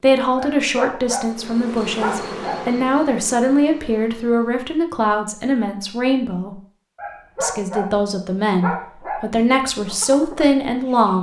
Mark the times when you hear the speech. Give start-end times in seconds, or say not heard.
0.0-6.5, 7.4-11.1.